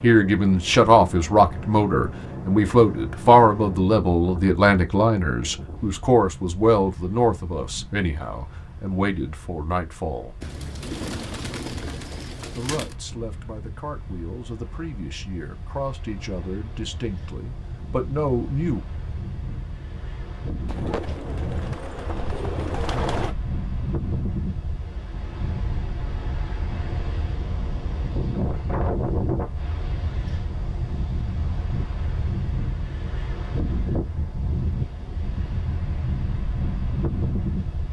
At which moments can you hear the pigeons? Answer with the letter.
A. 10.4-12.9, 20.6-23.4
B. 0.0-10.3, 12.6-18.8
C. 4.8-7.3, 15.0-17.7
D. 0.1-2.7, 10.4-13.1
A.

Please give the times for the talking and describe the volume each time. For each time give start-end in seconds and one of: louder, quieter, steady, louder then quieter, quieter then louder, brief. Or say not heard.
0.0-10.3 quieter
12.6-18.8 louder.